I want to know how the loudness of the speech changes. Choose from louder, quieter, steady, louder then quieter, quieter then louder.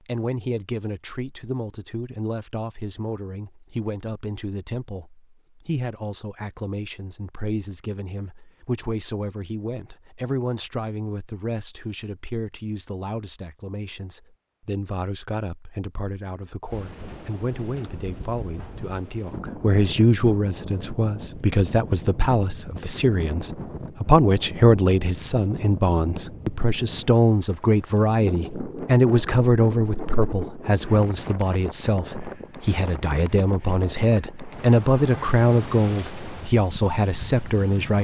louder.